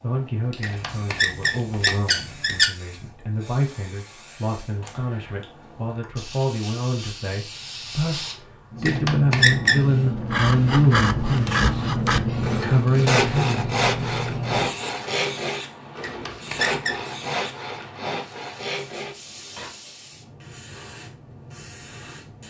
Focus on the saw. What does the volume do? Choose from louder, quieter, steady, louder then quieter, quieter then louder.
quieter.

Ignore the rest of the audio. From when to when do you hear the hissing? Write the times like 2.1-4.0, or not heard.
0.0-22.4.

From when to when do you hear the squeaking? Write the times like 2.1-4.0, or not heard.
0.6-2.7, 8.8-9.8, 16.0-17.0.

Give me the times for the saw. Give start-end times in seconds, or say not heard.
10.2-19.7.